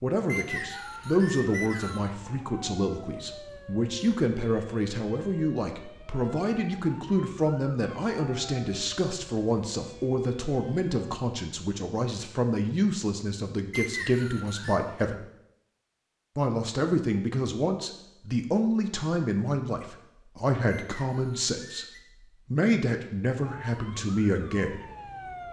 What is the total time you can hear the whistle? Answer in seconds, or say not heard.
4 s.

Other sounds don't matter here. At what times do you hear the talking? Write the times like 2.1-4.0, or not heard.
0.0-15.2, 16.4-21.9, 22.5-24.8.